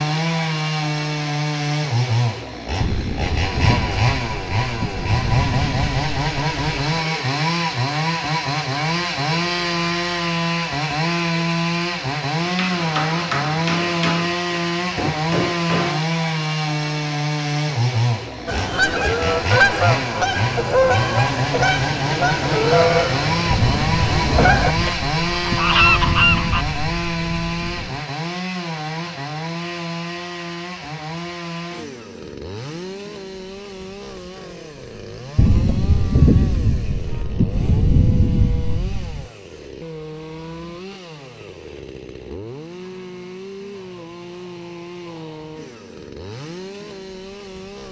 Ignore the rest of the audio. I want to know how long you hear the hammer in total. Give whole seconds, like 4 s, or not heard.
4 s.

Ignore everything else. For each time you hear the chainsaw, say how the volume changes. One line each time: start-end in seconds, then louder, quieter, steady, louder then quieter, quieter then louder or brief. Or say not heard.
0.0-47.8 quieter.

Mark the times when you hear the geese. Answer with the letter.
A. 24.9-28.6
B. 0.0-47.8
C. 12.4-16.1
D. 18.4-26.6
D.